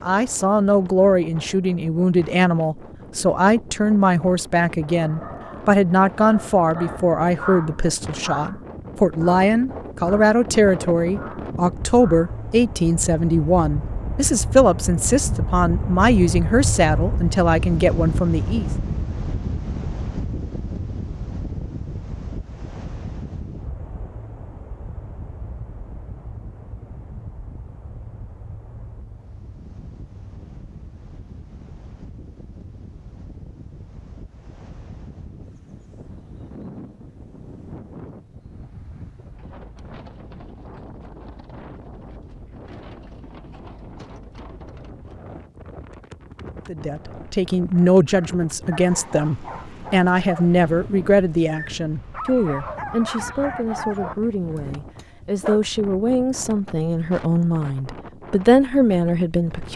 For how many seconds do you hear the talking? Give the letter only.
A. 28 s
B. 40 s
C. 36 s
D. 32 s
D.